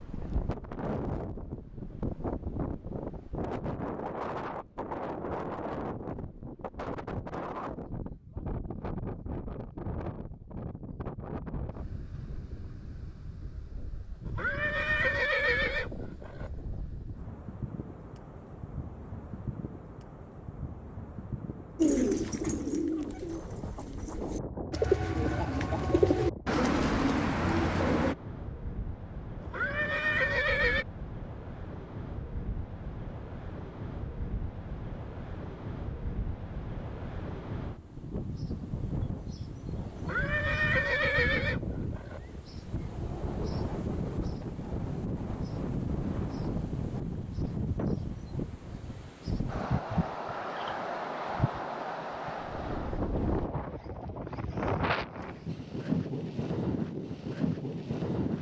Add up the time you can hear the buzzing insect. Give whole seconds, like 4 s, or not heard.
not heard.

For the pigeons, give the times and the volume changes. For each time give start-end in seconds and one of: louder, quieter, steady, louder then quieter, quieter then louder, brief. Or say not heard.
21.8-28.1 quieter then louder.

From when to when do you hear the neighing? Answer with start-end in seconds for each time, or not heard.
14.2-16.7, 29.4-30.9, 40.0-42.5.